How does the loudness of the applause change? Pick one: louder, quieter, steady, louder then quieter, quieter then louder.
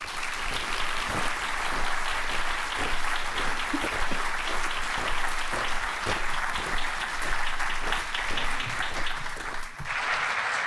steady.